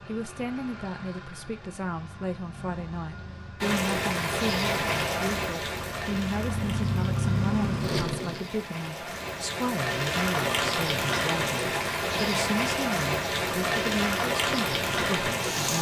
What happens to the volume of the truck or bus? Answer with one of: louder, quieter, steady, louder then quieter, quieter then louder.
louder.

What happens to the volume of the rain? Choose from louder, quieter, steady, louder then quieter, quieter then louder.
quieter then louder.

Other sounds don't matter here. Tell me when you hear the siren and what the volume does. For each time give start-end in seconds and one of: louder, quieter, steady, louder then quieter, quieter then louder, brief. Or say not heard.
not heard.